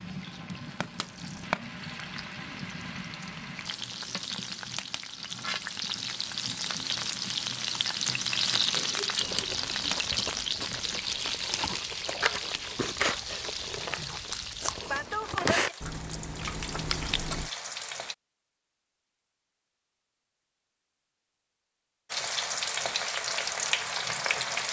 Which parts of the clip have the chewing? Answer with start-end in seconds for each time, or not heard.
9.2-17.5.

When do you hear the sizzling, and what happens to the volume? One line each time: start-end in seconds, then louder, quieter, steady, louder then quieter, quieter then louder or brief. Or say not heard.
0.0-18.1 louder then quieter
22.1-24.6 brief.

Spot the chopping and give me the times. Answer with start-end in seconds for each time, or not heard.
not heard.